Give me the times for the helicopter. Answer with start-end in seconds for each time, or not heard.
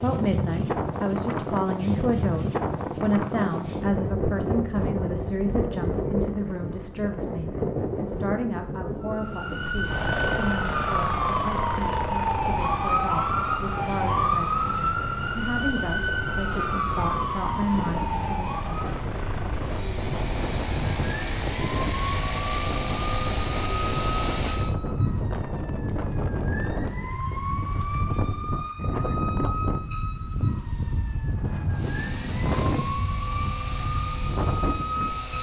9.8-24.8, 31.7-35.3.